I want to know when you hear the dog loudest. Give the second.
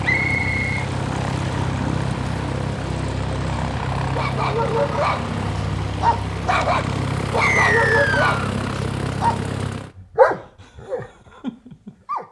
10 s.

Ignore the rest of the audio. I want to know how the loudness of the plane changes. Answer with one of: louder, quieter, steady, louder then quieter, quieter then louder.
steady.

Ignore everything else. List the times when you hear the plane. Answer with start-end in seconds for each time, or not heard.
0.0-9.9.